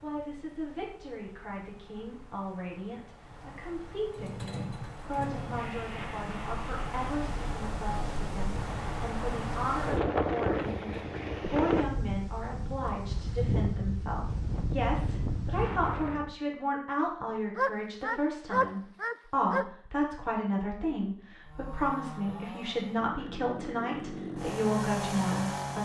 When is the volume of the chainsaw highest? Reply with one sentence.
The loudest moment of the chainsaw is at 25 seconds.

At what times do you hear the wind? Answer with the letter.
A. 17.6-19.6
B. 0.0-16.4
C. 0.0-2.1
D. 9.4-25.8
B.